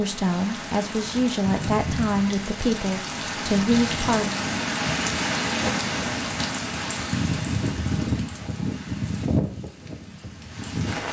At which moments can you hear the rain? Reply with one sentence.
The rain can be heard from 0.0 to 11.0 s.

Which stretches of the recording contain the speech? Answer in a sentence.
The speech can be heard from 0.0 to 4.3 s.